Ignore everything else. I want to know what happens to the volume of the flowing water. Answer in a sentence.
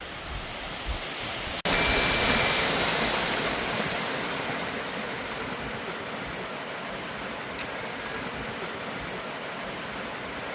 The loudness of the flowing water goes down.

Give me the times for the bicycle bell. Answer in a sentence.
The bicycle bell can be heard from 1.7 to 2.6 s and from 7.5 to 8.3 s.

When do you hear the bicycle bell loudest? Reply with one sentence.
The volume of the bicycle bell peaks at 2 seconds.